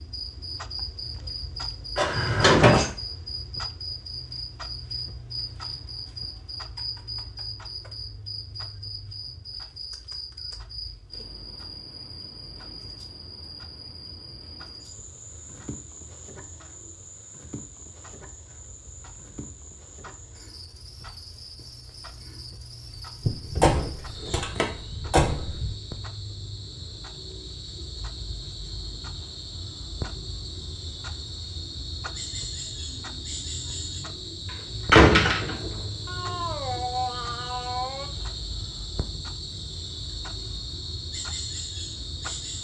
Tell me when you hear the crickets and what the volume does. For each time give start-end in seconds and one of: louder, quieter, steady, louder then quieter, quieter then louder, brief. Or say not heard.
0.0-42.5 quieter then louder.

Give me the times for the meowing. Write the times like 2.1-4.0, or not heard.
36.0-38.1.